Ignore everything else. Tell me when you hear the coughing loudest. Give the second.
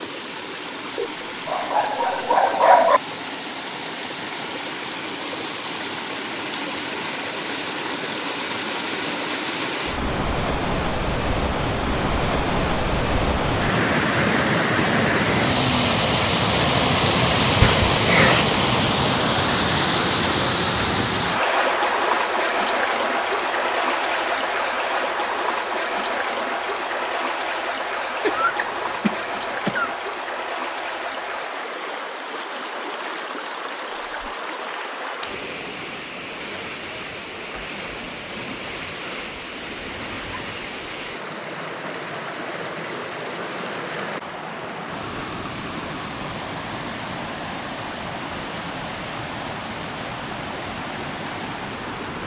18 s.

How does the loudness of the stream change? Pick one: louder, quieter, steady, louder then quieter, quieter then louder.
louder then quieter.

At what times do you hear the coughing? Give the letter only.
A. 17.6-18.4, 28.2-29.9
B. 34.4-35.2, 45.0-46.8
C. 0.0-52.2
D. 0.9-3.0
A.